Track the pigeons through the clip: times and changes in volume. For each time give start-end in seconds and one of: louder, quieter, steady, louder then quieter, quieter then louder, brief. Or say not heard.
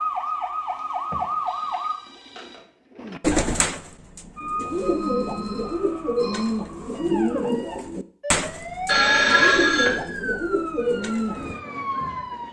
1.1-11.6 steady.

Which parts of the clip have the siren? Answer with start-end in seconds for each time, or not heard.
0.0-2.0, 4.3-12.4.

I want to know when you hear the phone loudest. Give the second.
9 s.